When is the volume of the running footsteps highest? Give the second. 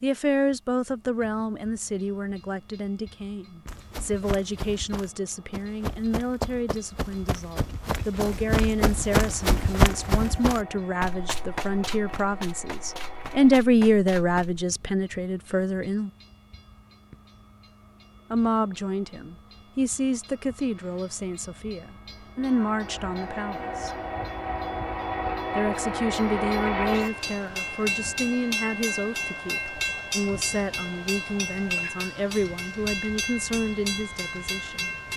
10 s.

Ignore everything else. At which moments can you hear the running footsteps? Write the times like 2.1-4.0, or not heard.
3.6-14.7.